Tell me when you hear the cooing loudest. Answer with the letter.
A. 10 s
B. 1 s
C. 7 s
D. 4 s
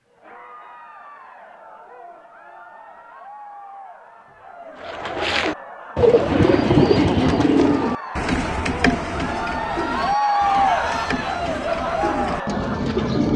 C.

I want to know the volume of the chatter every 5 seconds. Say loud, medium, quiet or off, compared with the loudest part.
quiet, medium, loud.